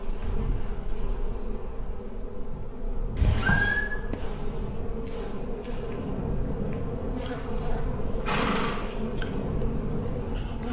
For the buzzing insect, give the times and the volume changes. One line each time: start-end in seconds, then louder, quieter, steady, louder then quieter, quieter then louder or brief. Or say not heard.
0.0-10.6 louder.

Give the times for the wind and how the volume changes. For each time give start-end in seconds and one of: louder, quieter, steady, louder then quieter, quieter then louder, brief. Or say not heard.
0.0-10.6 louder.